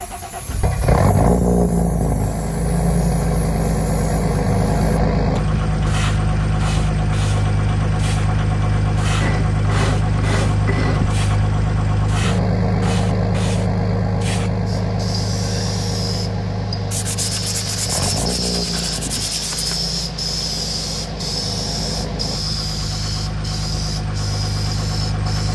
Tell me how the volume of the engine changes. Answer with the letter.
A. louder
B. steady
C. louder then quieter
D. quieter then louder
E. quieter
E.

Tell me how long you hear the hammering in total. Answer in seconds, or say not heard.
not heard.